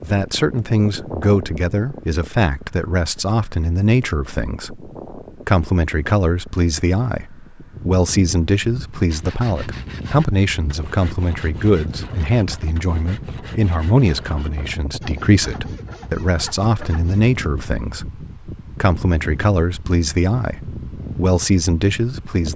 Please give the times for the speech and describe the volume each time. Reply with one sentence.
The speech can be heard from 0.0 to 22.5 s, at a steady volume.